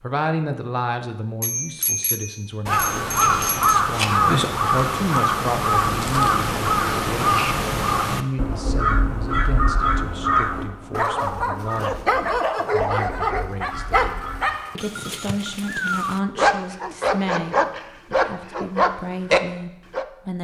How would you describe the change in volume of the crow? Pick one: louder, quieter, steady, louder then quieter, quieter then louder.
quieter.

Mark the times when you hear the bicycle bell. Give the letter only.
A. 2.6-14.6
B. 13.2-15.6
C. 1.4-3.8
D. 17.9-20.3
C.